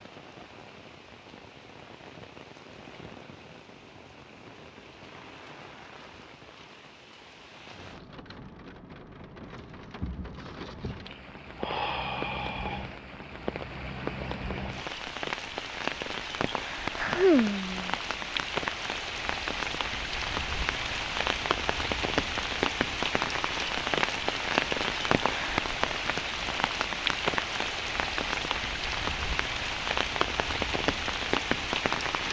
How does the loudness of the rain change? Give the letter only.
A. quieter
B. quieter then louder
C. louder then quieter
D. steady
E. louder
E.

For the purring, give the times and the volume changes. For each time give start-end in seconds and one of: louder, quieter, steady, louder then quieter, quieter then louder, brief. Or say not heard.
not heard.